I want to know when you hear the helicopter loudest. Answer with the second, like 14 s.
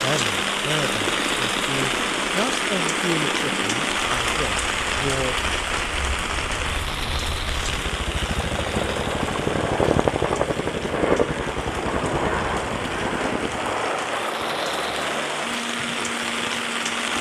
10 s.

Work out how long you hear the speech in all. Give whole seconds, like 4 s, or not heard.
5 s.